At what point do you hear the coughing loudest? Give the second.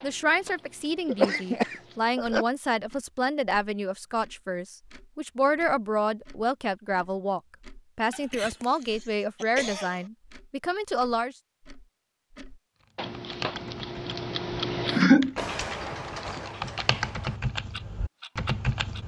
15 s.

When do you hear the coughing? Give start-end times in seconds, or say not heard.
1.1-2.5, 8.1-10.1, 14.8-15.3.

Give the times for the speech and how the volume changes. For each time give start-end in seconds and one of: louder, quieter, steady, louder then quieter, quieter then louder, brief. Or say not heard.
0.0-11.3 steady.